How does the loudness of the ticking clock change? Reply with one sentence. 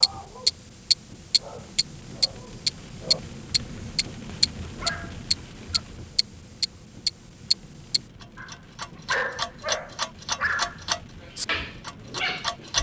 The volume of the ticking clock goes down.